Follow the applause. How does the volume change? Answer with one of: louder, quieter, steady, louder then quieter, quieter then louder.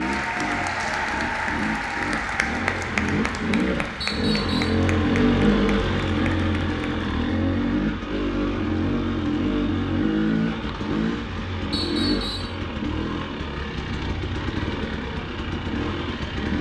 quieter.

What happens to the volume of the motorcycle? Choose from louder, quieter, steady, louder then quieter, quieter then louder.
louder then quieter.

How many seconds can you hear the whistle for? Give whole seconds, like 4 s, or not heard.
2 s.